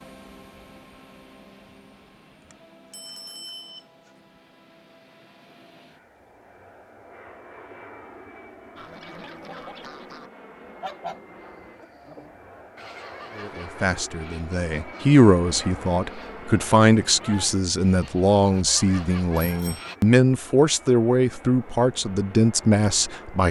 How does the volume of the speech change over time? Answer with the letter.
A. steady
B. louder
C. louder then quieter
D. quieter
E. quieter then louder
A.